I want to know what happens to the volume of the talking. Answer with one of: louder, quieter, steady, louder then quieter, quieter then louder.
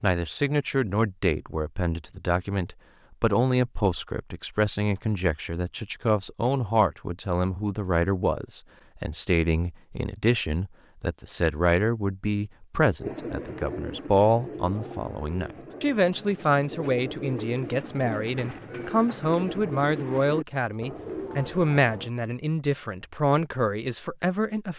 steady.